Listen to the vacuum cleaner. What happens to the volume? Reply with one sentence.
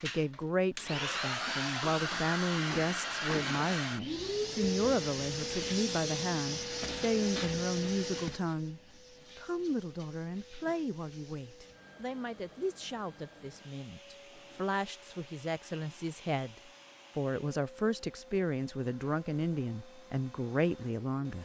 The volume of the vacuum cleaner goes down.